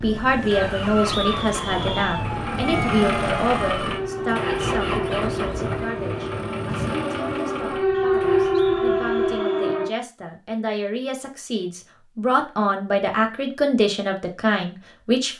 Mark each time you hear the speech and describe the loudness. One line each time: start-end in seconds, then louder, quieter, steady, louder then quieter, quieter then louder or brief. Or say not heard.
0.0-15.3 quieter then louder.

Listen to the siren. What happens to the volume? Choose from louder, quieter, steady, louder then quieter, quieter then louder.
louder.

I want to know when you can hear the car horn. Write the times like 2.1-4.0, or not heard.
2.7-3.8.